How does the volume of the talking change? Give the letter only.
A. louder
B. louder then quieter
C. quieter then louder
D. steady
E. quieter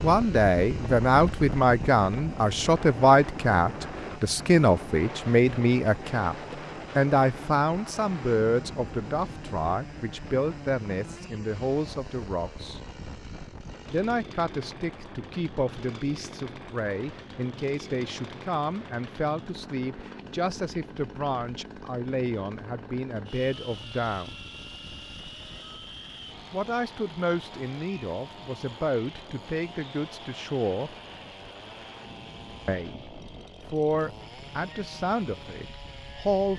E.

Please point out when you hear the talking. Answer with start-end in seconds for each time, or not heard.
0.0-12.8, 13.9-24.4, 26.5-30.9, 32.6-36.5.